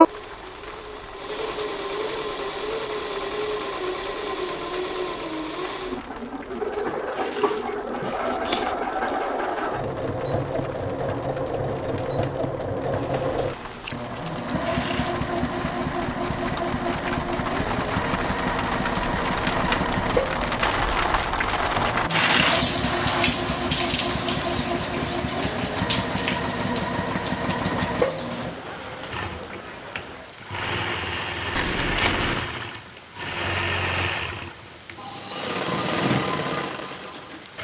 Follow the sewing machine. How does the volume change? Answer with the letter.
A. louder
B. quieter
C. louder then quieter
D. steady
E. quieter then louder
D.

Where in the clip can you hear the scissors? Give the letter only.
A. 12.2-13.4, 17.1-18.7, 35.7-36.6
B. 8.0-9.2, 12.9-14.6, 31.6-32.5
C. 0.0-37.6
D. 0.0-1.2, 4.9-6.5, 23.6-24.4
B.